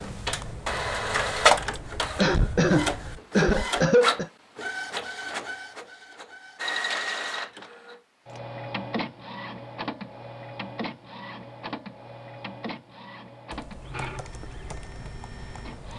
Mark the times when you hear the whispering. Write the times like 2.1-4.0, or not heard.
not heard.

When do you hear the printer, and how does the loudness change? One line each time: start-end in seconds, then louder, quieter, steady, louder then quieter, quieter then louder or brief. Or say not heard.
0.0-15.9 quieter.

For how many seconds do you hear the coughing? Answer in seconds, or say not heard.
3 s.